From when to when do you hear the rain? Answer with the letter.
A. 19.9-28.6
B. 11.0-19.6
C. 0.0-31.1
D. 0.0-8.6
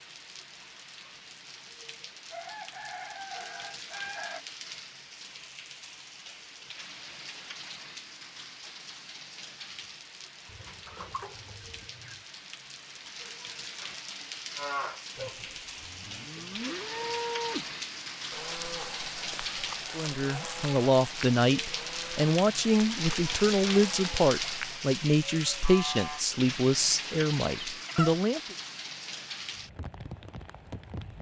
C.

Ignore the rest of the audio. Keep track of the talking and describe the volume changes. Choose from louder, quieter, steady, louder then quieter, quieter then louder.
steady.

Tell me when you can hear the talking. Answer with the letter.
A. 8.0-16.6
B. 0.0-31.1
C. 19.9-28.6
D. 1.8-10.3
C.